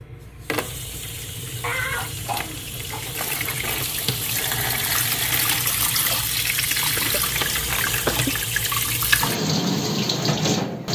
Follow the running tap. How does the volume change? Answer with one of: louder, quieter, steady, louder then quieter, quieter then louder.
louder.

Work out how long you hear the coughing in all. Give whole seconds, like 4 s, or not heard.
3 s.